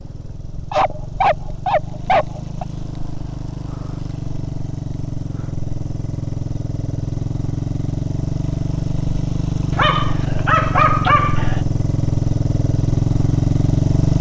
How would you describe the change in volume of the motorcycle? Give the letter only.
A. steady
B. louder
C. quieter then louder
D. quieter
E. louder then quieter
B.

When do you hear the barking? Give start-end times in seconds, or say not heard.
0.7-2.6, 9.7-11.6.